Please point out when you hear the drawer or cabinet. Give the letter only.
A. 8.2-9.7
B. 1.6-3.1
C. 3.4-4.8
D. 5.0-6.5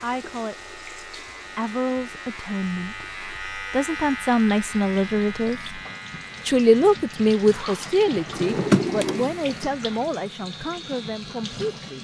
A.